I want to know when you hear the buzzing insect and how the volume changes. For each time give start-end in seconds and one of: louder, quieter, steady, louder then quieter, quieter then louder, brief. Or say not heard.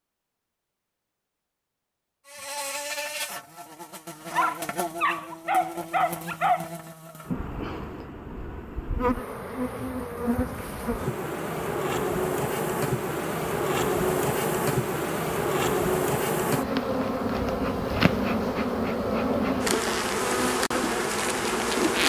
2.2-22.0 louder.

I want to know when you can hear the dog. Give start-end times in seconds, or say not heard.
4.3-6.7.